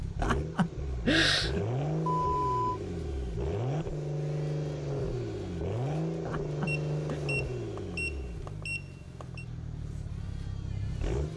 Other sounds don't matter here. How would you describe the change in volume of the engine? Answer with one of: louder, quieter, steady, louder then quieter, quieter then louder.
quieter.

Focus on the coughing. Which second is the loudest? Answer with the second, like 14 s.
1 s.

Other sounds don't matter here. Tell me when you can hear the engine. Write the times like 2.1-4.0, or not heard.
0.0-11.3.